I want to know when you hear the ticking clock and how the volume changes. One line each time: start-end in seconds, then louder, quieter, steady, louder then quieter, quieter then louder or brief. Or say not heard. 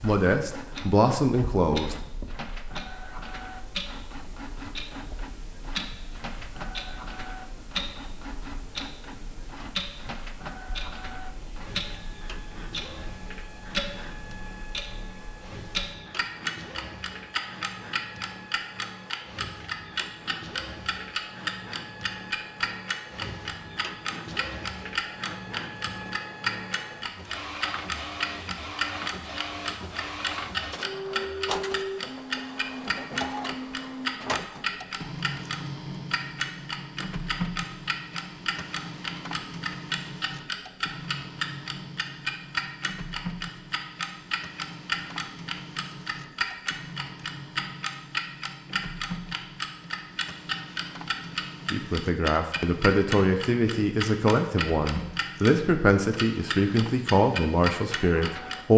0.0-55.5 louder
56.1-58.6 brief.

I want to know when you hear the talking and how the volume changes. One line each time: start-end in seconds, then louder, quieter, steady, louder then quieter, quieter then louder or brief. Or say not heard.
0.0-1.9 brief
51.7-58.7 steady.